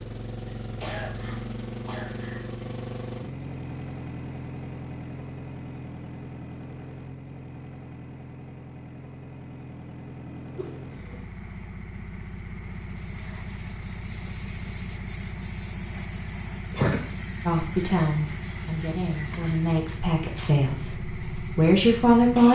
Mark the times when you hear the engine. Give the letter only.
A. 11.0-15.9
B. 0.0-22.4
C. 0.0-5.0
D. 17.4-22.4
B.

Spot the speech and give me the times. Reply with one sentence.
You can hear the speech from 17.4 to 22.4 s.